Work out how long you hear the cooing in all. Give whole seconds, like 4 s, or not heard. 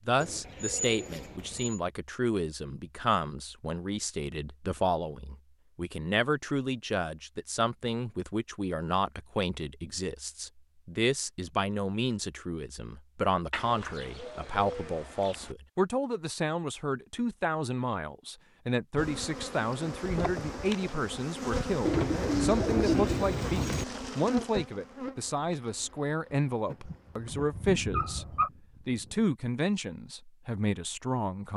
6 s.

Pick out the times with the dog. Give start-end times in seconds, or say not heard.
26.7-28.5.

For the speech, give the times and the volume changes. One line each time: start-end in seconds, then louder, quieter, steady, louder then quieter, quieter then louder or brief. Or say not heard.
0.1-28.2 steady
28.9-31.5 brief.